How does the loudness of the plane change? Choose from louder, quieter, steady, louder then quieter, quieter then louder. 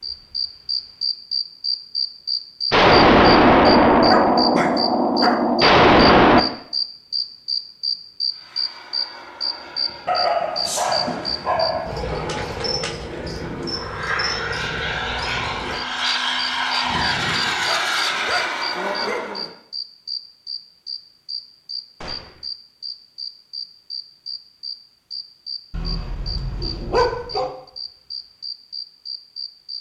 louder.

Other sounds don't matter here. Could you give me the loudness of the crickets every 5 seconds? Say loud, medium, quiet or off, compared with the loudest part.
loud, loud, medium, medium, medium, medium.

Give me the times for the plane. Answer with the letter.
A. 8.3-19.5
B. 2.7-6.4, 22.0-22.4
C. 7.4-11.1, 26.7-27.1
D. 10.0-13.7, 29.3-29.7
A.